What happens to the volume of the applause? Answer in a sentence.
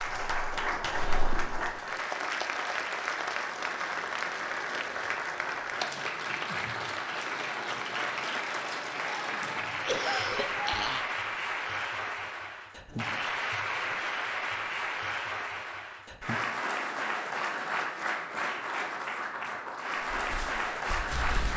The volume of the applause stays about the same.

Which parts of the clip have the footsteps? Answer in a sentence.
The footsteps can be heard from 0.0 to 1.8 s and from 20.1 to 21.5 s.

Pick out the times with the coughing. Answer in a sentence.
The coughing can be heard from 9.8 to 11.1 s.